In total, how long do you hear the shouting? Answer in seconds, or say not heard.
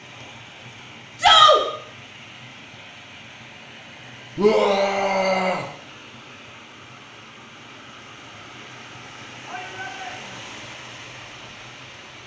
3 s.